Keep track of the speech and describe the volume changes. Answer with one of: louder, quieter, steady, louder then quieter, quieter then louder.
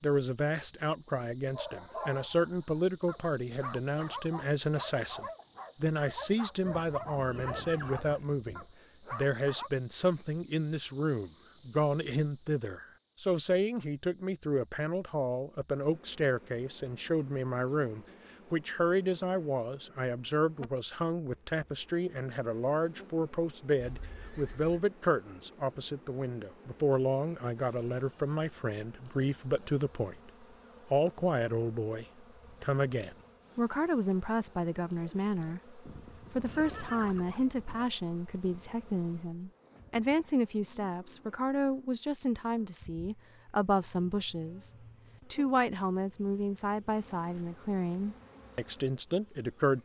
steady.